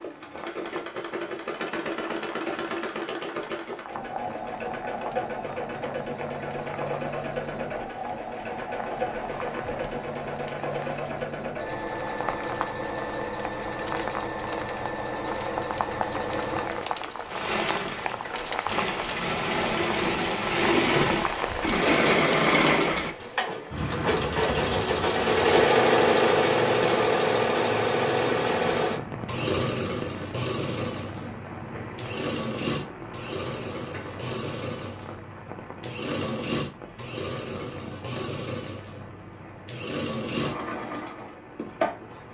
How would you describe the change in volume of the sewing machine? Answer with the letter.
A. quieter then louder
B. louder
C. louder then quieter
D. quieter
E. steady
C.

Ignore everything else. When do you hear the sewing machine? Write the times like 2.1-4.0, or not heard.
0.0-42.2.